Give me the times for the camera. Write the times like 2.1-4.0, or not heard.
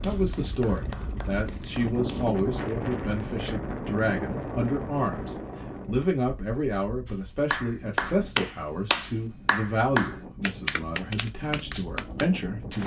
not heard.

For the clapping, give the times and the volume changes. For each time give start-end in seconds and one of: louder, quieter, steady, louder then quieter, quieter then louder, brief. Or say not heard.
0.0-2.4 brief
7.0-12.8 quieter.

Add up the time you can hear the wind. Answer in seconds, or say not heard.
13 s.